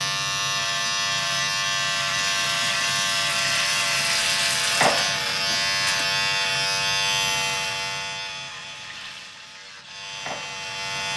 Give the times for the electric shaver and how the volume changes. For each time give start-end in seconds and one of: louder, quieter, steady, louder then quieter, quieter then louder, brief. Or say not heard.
0.0-11.1 quieter.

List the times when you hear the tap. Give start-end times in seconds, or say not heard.
2.3-6.0, 8.6-11.1.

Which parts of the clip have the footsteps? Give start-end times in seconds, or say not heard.
not heard.